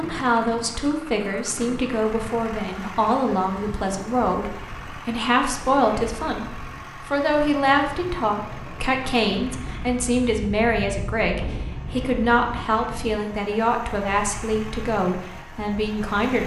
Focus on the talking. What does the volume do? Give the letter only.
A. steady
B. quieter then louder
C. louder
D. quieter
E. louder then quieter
A.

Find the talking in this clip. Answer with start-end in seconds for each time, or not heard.
0.0-16.4.